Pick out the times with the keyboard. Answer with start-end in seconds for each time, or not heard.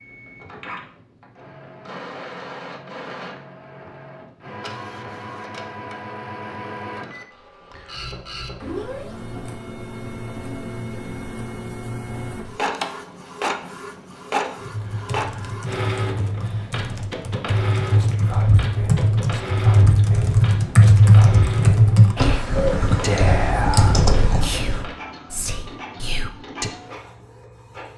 14.6-24.9.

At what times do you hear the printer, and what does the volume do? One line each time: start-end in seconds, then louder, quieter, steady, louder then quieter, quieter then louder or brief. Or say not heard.
0.0-27.9 louder then quieter.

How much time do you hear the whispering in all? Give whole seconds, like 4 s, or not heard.
9 s.